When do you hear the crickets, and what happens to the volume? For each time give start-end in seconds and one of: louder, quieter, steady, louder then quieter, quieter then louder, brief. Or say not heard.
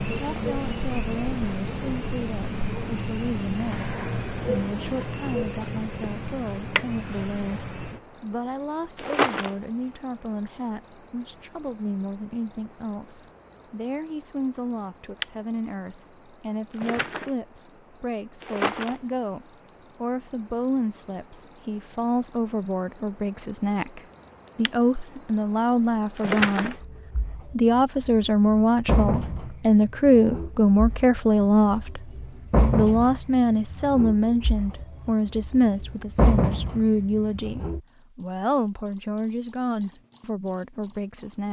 0.0-41.4 quieter then louder.